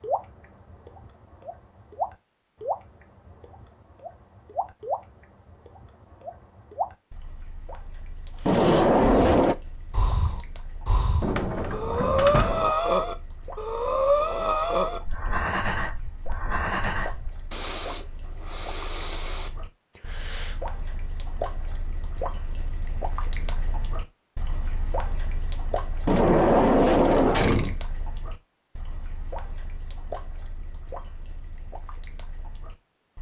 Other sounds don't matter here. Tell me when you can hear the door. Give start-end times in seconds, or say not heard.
8.4-9.6, 11.2-12.8, 26.1-27.8.